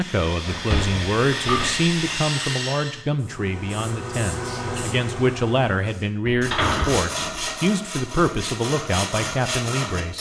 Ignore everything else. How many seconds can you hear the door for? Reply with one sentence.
The door can be heard for 3 seconds in total.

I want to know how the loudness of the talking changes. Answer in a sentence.
The volume of the talking stays about the same.